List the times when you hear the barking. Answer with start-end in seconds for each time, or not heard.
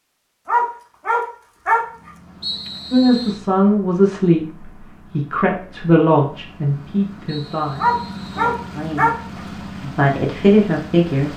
0.5-2.1, 7.8-9.2.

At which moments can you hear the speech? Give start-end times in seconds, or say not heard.
2.9-11.3.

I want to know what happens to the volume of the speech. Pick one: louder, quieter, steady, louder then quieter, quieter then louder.
quieter then louder.